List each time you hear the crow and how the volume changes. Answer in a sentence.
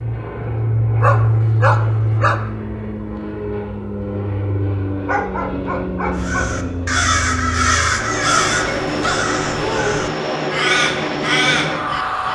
The crow can be heard from 6.2 to 12.2 s, getting quieter then louder.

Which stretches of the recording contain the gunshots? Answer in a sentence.
You can't hear the gunshots here.